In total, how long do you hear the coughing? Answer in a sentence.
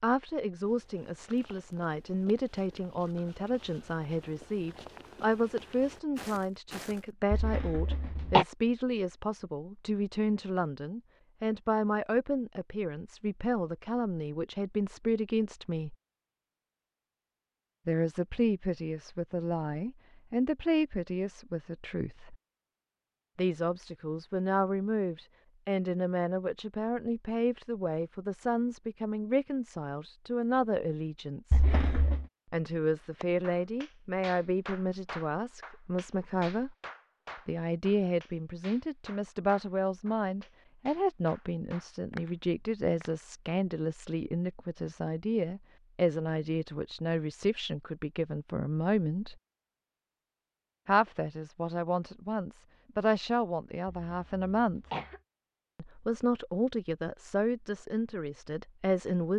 The coughing can be heard for 3 seconds in total.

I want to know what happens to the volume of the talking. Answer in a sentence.
The loudness of the talking stays about the same.